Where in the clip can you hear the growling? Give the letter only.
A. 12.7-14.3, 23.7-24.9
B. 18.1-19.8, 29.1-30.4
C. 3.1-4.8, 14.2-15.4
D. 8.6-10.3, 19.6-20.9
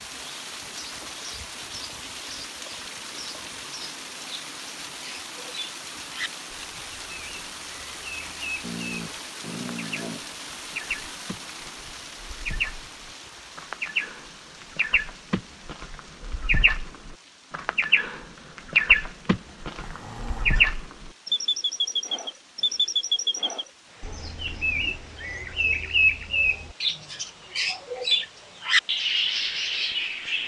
D.